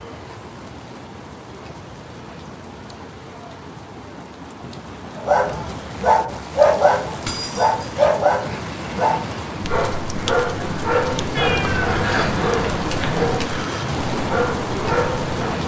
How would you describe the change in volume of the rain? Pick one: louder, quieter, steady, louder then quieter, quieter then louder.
louder.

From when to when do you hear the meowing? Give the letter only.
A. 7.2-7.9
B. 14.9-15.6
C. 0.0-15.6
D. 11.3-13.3
D.